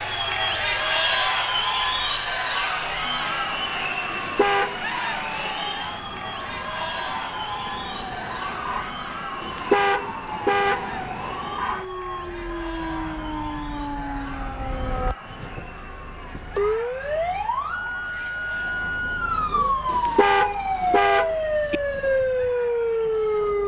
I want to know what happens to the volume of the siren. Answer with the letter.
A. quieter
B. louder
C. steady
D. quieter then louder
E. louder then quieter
B.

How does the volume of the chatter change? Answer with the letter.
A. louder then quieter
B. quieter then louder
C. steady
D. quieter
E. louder
D.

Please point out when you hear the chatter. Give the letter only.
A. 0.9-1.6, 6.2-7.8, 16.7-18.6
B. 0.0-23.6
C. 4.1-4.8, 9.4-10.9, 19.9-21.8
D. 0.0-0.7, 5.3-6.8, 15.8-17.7
B.